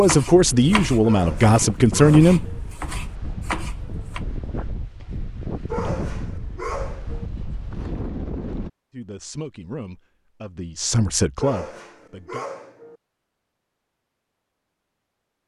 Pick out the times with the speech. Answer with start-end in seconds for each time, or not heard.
0.0-2.5, 8.9-12.4.